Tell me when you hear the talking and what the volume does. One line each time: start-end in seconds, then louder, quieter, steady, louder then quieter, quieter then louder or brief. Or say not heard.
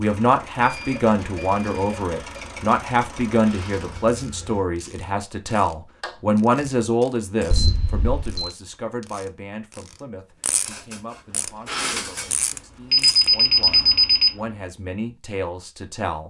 0.0-16.2 quieter then louder.